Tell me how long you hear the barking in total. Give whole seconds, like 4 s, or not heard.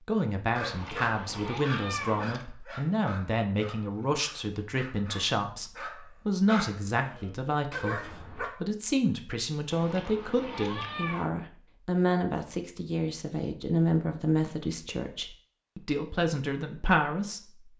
8 s.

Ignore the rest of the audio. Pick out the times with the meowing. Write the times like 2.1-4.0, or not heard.
0.6-2.5, 9.7-11.3.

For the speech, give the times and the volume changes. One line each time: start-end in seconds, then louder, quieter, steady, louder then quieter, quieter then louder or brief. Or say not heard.
0.1-17.4 steady.